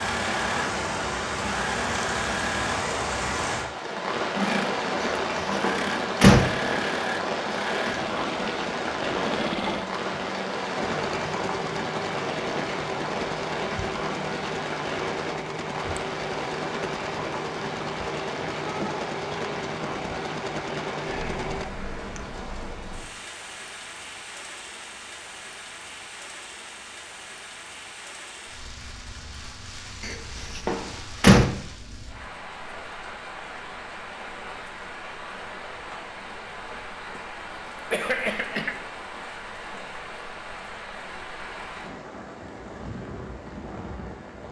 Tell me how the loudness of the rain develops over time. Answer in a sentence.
The loudness of the rain goes down.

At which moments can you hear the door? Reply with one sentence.
You can hear the door from 5.0 to 6.5 s and from 30.0 to 31.5 s.